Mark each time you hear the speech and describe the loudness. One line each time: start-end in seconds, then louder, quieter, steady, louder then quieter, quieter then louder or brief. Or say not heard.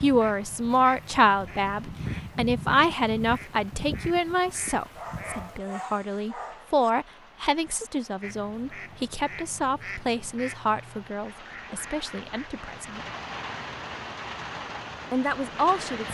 0.0-13.0 quieter
15.1-16.0 brief.